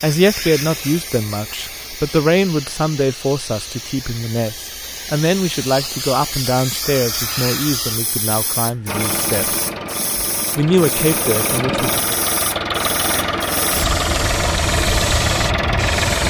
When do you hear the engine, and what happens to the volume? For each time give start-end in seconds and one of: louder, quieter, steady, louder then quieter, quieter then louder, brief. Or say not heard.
8.8-16.2 louder.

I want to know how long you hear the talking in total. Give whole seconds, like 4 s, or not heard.
11 s.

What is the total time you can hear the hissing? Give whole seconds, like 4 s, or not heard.
16 s.